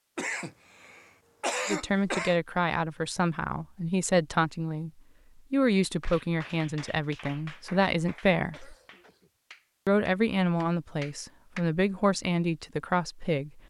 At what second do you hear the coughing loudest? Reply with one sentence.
The volume of the coughing peaks at 2 seconds.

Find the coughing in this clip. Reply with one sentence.
The coughing can be heard from 0.1 to 2.4 s and from 8.5 to 9.3 s.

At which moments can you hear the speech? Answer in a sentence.
You can hear the speech from 1.6 to 4.9 s, from 5.5 to 8.8 s and from 9.8 to 13.6 s.